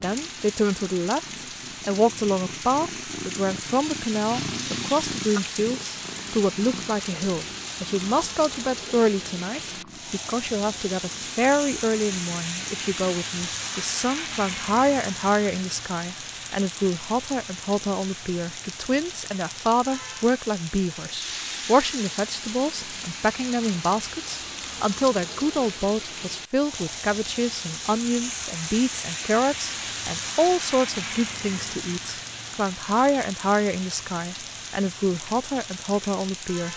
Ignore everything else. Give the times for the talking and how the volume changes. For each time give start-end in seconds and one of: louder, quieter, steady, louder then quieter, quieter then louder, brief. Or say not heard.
0.0-36.7 steady.